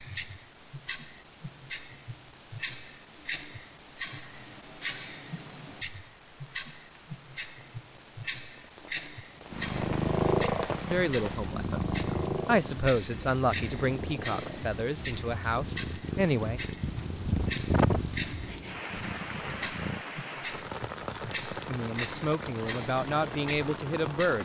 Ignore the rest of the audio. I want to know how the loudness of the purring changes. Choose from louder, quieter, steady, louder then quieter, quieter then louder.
quieter then louder.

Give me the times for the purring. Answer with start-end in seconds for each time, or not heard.
9.5-20.0.